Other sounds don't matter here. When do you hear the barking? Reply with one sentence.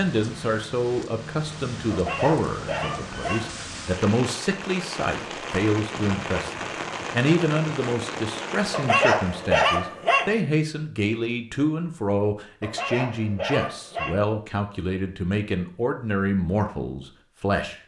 The barking can be heard from 1.9 to 3.5 s, from 8.7 to 10.3 s and from 12.6 to 14.2 s.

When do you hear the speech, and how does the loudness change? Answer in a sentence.
You can hear the speech from 0.0 to 17.8 s, at a steady volume.